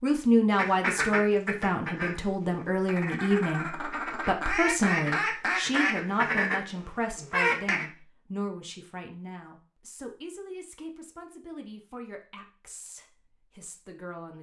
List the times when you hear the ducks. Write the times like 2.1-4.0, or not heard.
0.6-7.8.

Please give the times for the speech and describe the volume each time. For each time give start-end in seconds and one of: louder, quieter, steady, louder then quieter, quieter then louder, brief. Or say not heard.
0.0-14.3 quieter.